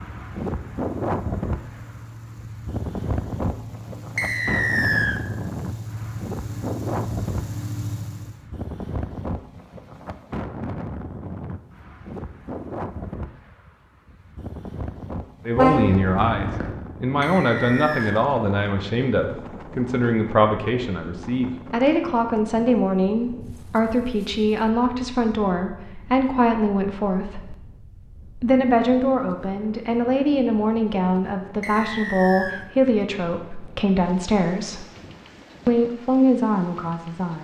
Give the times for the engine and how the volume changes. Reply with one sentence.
The engine can be heard from 0.0 to 8.5 s, getting louder.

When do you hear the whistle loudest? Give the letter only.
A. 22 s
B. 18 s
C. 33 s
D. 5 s
D.